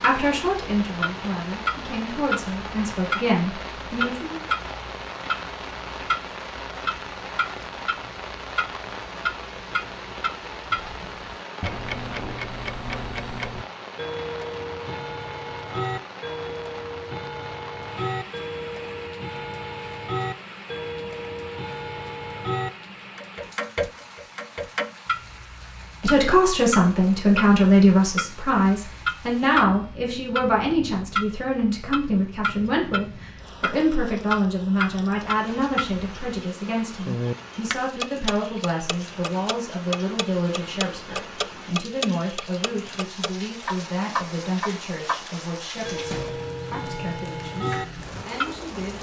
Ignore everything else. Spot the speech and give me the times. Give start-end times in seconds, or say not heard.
0.0-4.4, 26.0-48.9.